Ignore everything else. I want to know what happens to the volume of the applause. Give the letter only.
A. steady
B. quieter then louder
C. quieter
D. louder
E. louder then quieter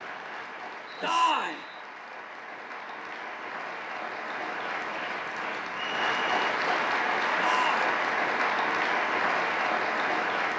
D.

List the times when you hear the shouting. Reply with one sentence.
You can hear the shouting from 1.0 to 1.6 s and from 7.3 to 7.9 s.